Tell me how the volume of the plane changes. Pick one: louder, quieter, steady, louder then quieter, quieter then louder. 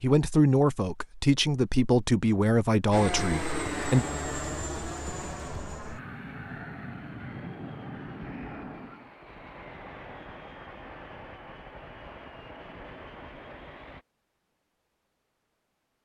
quieter.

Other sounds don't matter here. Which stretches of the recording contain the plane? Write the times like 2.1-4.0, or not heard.
2.9-14.1.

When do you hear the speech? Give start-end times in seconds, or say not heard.
0.0-4.0.